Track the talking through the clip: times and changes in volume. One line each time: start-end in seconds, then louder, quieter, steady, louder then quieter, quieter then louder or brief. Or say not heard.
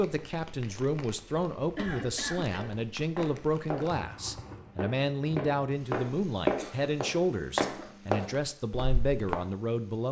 0.0-10.0 steady.